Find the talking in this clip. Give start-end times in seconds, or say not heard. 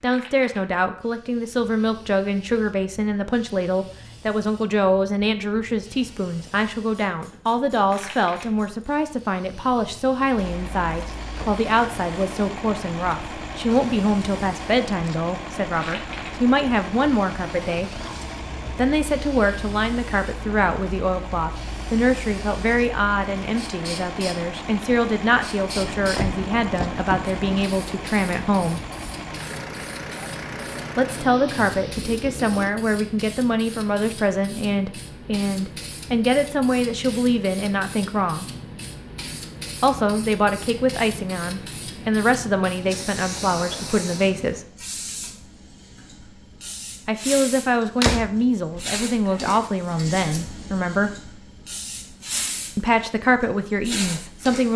0.0-17.9, 18.8-28.8, 30.9-38.5, 39.8-44.6, 47.0-51.1, 52.8-54.7.